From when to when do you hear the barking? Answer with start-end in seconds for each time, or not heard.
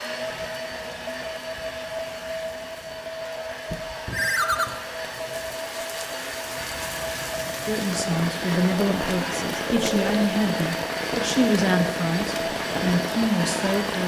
not heard.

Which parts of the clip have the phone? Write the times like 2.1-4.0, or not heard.
4.1-4.7, 9.7-10.3.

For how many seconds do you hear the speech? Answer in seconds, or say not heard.
6 s.